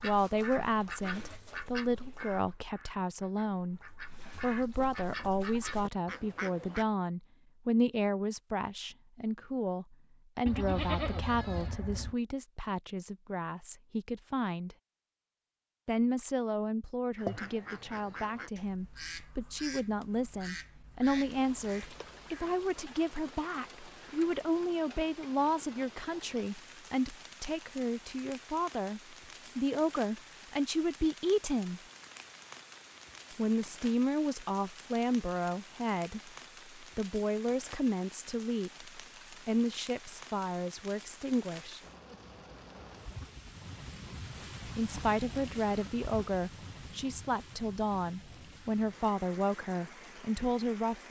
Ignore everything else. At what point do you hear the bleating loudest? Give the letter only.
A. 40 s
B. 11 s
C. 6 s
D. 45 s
B.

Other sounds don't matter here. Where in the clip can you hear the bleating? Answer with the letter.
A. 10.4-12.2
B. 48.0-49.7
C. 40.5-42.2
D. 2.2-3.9
A.